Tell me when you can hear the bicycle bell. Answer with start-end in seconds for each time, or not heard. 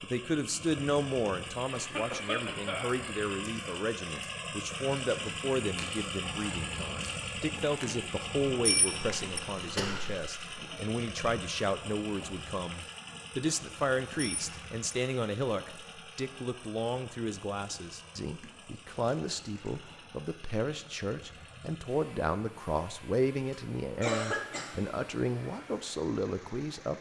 8.7-9.4, 14.2-14.9.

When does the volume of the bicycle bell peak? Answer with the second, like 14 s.
9 s.